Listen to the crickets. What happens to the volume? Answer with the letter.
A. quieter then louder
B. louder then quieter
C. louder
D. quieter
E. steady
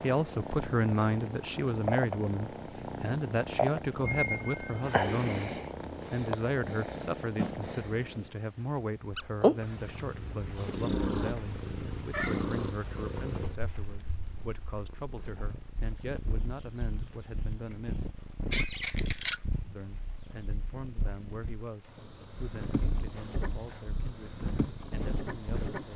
E.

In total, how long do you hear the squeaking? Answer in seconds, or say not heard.
2 s.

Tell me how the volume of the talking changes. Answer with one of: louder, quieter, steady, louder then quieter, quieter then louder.
quieter.